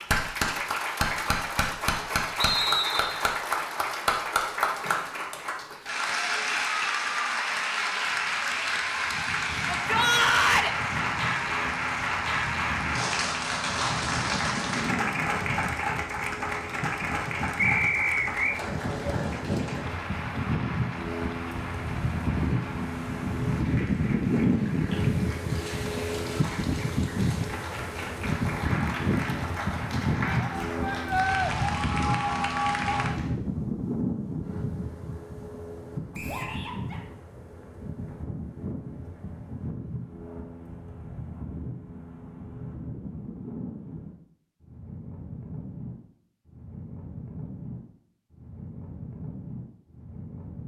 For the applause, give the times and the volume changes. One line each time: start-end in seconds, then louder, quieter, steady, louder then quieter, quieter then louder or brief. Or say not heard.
0.0-33.3 quieter then louder.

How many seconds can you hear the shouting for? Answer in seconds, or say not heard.
3 s.